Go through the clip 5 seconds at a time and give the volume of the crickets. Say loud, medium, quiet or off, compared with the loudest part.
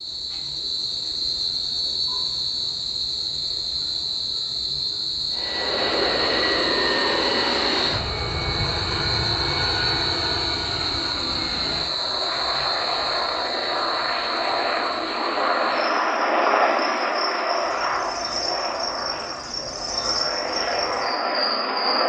loud, loud, loud, medium, loud.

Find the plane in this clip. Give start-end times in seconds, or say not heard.
5.3-22.0.